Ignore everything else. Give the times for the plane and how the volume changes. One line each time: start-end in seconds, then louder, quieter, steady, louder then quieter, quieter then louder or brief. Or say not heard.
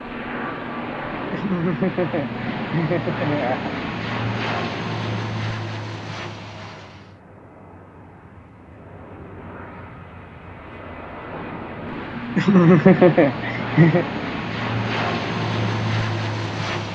0.0-16.9 quieter then louder.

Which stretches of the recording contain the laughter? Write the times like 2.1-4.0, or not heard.
1.3-3.7, 12.3-14.1.